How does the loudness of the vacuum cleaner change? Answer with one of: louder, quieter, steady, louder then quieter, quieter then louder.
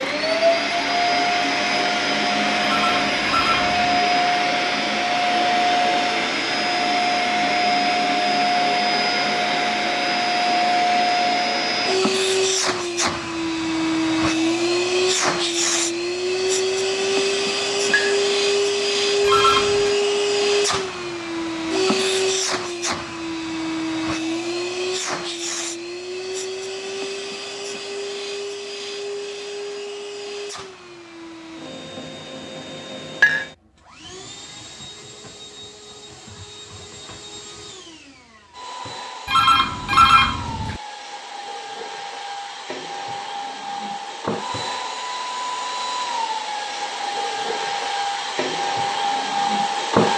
quieter then louder.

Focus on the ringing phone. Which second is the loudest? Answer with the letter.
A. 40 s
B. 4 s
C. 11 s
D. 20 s
A.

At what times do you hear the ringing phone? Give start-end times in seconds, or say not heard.
2.6-3.9, 19.2-19.9, 39.2-40.8.